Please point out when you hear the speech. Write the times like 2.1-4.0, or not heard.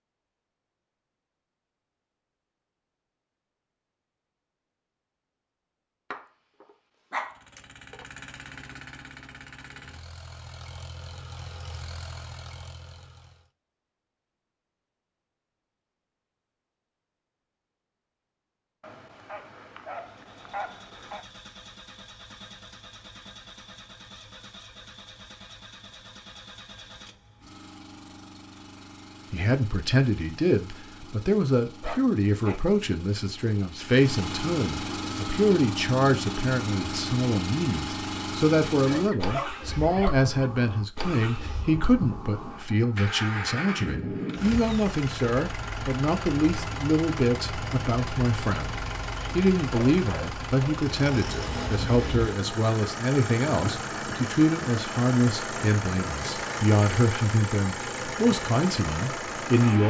29.3-59.8.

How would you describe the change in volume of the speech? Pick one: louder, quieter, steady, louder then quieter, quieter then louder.
steady.